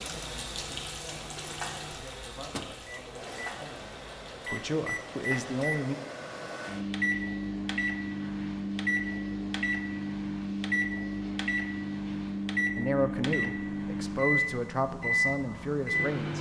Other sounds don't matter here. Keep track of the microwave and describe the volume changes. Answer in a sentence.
The loudness of the microwave goes up.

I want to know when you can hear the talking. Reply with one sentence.
You can hear the talking from 0.0 to 6.0 s and from 12.8 to 16.3 s.